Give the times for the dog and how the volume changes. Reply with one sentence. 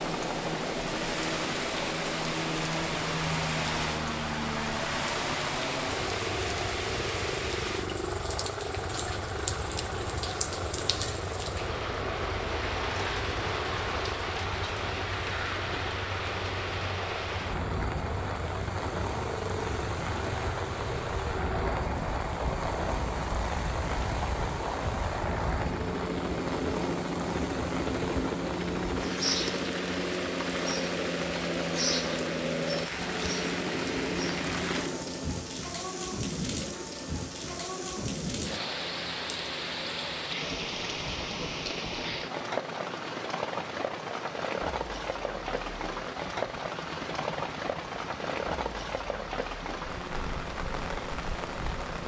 You can't hear the dog here.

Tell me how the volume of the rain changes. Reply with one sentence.
The loudness of the rain stays about the same.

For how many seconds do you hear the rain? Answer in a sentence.
The rain can be heard for 52 seconds in total.